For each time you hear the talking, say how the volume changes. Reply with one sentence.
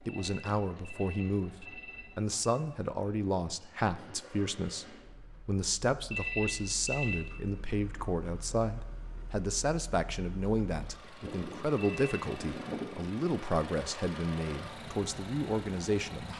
You can hear the talking from 0.1 to 16.3 s, at a steady volume.